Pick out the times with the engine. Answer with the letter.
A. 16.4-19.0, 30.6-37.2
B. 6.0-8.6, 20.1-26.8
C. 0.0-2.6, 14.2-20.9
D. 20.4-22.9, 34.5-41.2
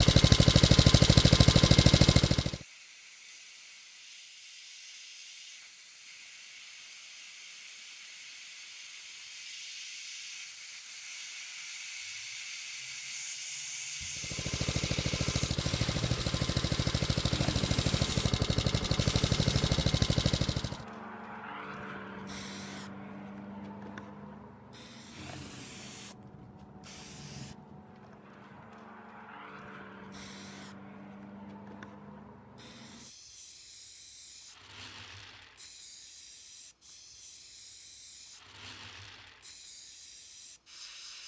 C.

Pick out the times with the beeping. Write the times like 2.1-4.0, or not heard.
not heard.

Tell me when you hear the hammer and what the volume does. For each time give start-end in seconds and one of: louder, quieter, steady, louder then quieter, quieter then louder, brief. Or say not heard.
not heard.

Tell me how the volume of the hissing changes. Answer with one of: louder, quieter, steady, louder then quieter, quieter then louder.
louder then quieter.